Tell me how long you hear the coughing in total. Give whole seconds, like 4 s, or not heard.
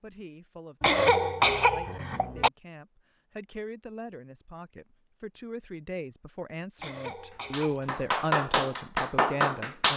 3 s.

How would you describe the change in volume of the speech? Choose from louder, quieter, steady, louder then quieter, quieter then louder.
louder.